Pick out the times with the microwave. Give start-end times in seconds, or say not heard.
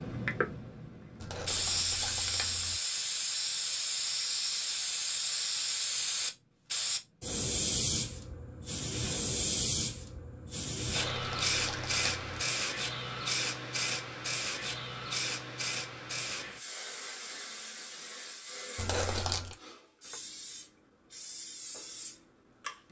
not heard.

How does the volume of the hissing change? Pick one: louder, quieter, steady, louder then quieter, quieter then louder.
quieter.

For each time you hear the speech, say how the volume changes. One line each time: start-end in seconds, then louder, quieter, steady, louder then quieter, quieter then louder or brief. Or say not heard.
not heard.